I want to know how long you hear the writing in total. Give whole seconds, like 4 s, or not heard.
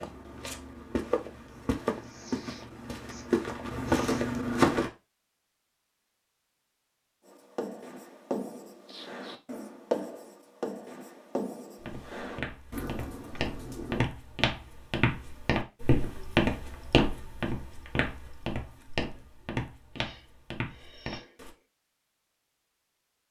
7 s.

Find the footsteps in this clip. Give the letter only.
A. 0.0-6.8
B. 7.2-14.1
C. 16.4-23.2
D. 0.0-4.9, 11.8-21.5
D.